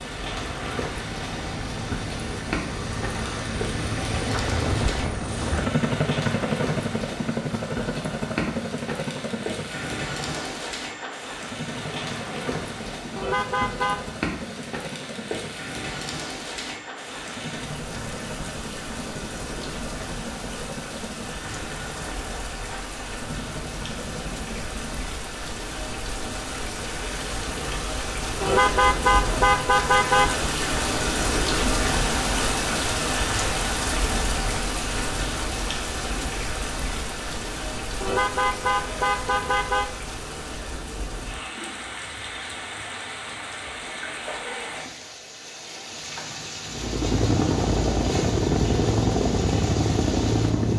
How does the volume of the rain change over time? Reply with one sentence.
The volume of the rain goes up, then down.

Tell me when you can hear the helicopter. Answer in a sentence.
The helicopter can be heard from 0.0 to 25.1 s and from 46.7 to 50.7 s.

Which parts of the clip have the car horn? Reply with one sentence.
The car horn can be heard from 13.2 to 14.2 s, from 28.4 to 30.4 s and from 38.0 to 39.9 s.